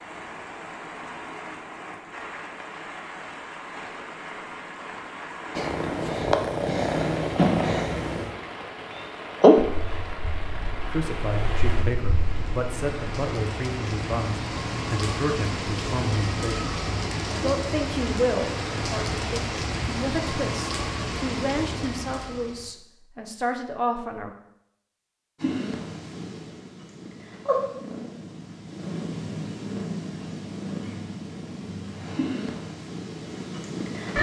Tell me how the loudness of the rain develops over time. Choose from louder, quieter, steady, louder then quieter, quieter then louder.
louder.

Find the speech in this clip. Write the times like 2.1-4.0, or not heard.
10.8-24.3.